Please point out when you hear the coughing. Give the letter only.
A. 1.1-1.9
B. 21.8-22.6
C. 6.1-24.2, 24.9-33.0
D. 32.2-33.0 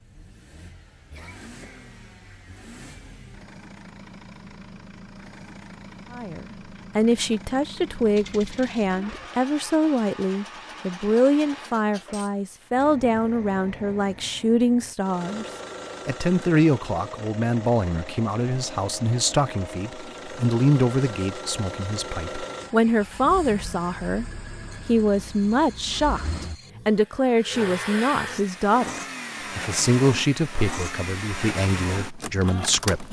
A.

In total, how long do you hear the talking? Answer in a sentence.
You can hear the talking for 26 seconds altogether.